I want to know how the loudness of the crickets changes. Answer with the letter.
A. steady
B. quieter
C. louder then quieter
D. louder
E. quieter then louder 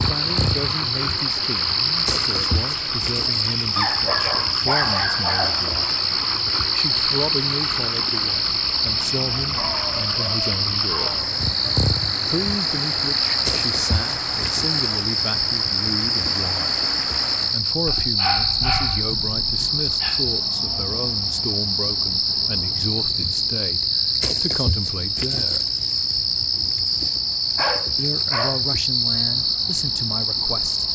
A.